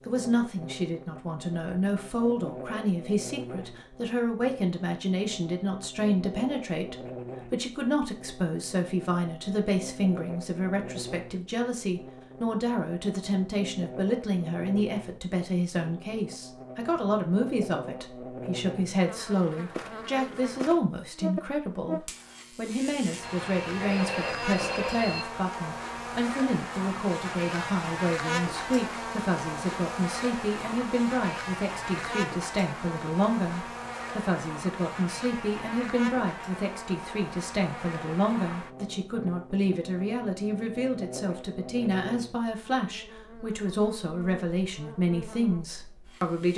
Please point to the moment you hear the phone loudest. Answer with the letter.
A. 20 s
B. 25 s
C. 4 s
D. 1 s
B.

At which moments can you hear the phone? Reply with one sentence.
You can hear the phone from 23.2 to 25.2 s.